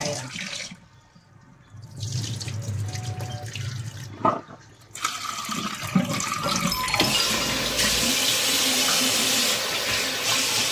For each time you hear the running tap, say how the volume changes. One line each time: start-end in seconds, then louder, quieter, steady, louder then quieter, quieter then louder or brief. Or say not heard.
0.0-10.6 louder.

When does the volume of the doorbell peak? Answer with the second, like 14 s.
7 s.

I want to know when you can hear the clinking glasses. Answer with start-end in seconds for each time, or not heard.
6.4-8.2.